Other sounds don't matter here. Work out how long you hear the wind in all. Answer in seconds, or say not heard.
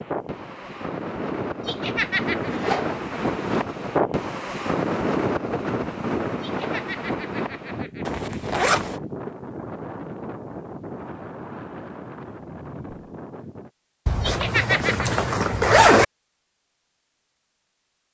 14 s.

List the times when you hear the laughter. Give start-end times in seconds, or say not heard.
1.6-2.5, 6.4-8.4, 14.2-15.1.